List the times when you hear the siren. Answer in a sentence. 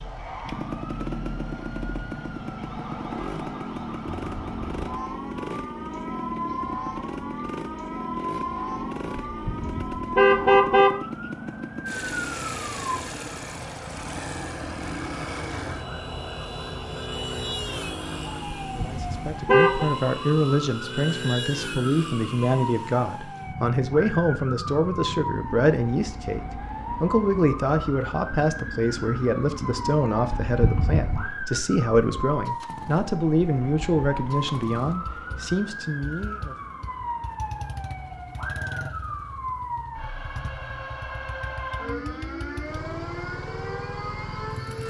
You can hear the siren from 0.0 to 44.8 s.